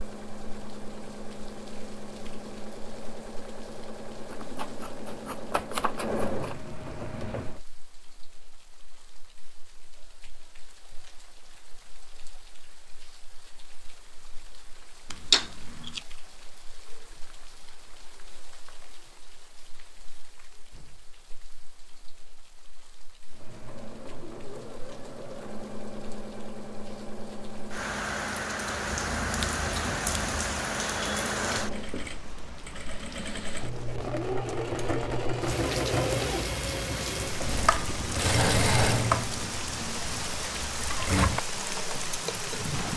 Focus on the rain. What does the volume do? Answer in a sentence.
The volume of the rain goes up.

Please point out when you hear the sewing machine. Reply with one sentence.
You can hear the sewing machine from 0.0 to 7.6 s and from 23.3 to 42.8 s.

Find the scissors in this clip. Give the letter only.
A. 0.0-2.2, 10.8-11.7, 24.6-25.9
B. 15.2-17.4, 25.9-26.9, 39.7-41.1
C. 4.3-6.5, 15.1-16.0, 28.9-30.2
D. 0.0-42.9
C.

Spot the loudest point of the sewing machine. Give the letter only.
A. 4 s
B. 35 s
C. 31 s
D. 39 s
D.